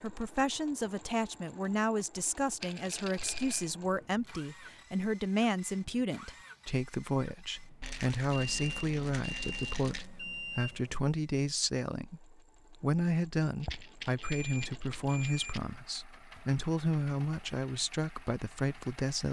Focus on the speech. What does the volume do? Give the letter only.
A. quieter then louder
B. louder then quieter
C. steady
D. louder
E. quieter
C.